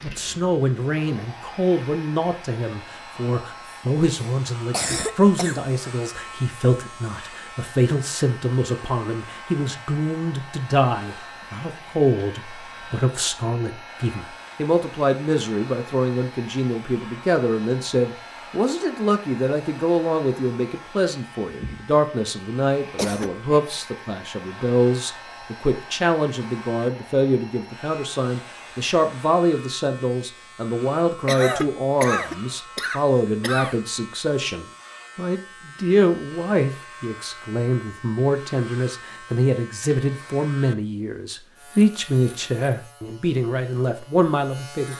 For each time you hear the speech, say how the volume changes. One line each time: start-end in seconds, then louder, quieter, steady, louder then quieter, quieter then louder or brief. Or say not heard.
0.0-44.9 steady.